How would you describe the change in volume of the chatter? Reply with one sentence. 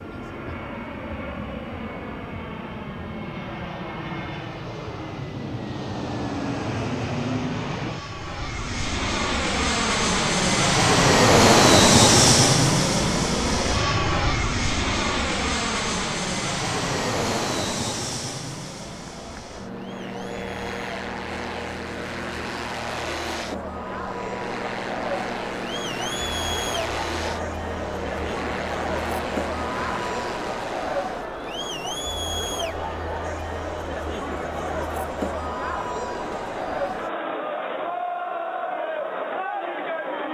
The volume of the chatter goes up.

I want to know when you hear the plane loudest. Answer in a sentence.
The volume of the plane peaks at 12 seconds.